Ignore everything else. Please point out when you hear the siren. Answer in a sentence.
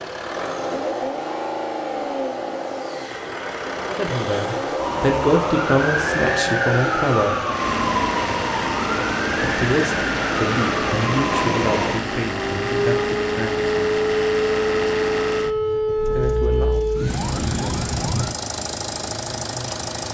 You can hear the siren from 4.8 to 18.4 s.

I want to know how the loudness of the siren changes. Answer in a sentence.
The volume of the siren stays about the same.